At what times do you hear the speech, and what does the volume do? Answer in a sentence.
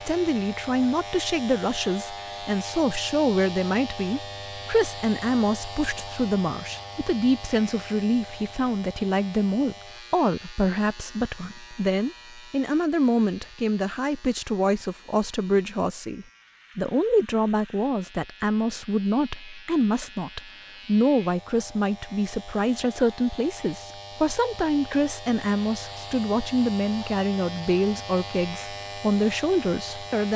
The speech can be heard from 0.1 to 30.3 s, at a steady volume.